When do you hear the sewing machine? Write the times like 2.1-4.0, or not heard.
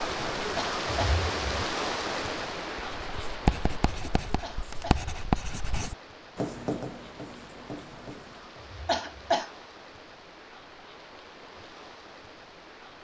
not heard.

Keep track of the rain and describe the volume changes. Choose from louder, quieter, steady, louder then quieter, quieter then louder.
quieter.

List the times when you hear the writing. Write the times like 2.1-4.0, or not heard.
3.0-8.7.